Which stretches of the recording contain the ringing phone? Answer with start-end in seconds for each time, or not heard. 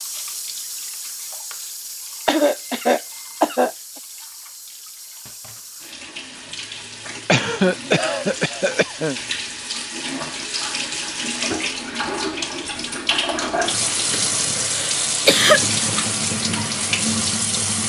not heard.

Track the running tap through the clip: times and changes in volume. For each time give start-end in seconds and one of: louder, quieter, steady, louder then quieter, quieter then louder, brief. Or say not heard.
0.0-17.8 louder.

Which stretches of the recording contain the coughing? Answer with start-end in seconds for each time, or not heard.
2.2-3.7, 7.2-9.2, 14.1-15.7.